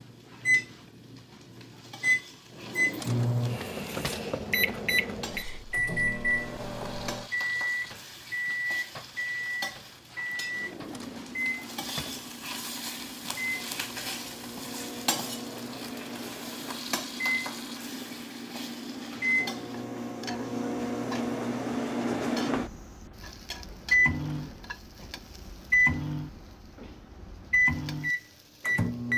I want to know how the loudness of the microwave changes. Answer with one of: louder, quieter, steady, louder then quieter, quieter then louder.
quieter then louder.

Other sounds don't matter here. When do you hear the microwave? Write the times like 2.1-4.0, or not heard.
0.4-29.1.